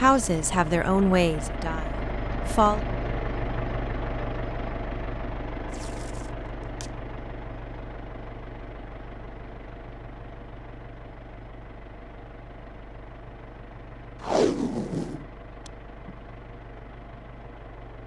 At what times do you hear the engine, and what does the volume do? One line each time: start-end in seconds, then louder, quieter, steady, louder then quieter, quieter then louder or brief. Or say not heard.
0.0-18.0 quieter.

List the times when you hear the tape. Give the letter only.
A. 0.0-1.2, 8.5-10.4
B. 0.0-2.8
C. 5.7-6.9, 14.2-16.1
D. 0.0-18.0
C.